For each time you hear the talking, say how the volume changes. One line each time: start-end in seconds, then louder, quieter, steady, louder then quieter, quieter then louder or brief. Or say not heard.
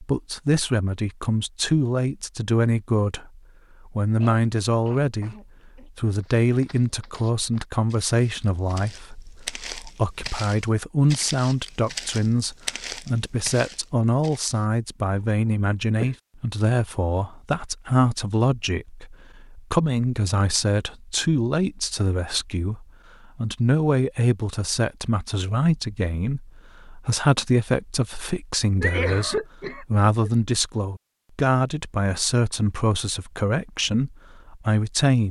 0.0-35.2 steady.